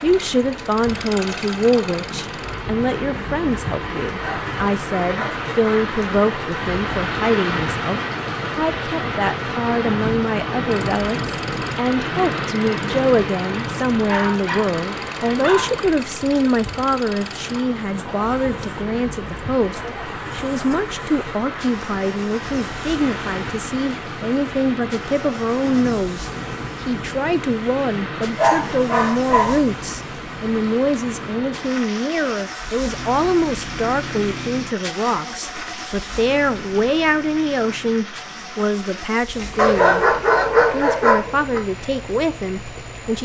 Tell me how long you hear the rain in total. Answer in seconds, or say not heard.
43 s.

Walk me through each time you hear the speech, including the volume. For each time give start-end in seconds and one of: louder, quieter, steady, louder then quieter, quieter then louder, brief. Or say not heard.
0.0-43.2 steady.